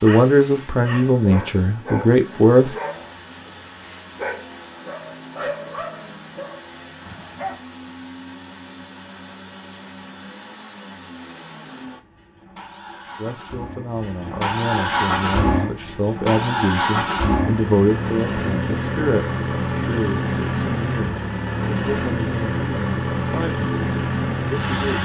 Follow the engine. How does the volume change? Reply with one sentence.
The loudness of the engine goes up.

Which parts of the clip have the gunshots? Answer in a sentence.
The gunshots can't be heard in this clip.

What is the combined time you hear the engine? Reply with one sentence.
The engine can be heard for 25 seconds in total.